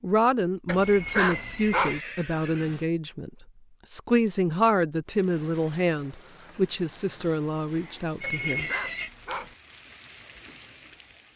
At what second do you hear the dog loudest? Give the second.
1 s.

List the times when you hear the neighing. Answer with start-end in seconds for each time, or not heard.
0.8-2.9, 8.2-9.1.